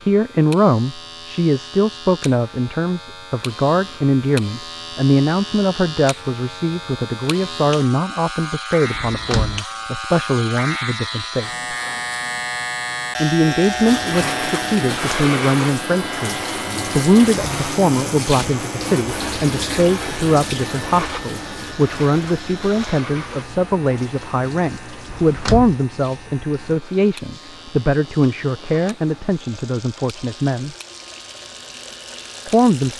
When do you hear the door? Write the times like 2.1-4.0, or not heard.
8.9-9.6, 25.1-25.8.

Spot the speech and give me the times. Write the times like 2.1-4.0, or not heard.
0.0-11.5, 13.2-30.8, 32.5-32.9.